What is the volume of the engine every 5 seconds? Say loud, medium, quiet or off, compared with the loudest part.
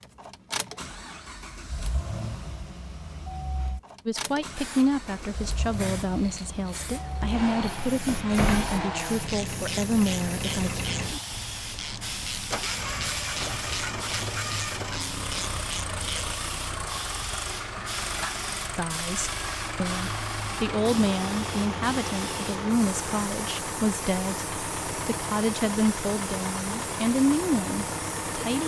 medium, loud, loud, loud, loud, loud.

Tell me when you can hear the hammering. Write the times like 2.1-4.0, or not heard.
not heard.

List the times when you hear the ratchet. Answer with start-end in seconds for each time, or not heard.
8.9-16.4.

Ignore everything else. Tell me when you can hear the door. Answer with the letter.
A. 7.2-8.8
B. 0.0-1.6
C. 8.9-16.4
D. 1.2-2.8
A.